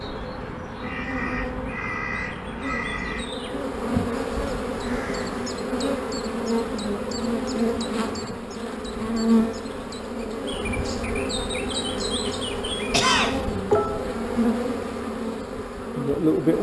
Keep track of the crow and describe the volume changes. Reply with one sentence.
The volume of the crow goes down.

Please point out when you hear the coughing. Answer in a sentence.
The coughing can be heard from 12.9 to 14.2 s.